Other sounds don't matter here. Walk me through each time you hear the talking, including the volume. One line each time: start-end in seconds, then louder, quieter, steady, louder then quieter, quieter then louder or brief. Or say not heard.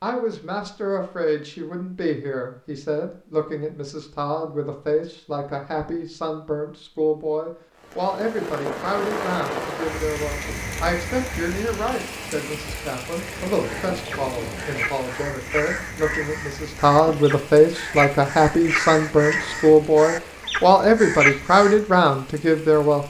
0.0-23.0 louder.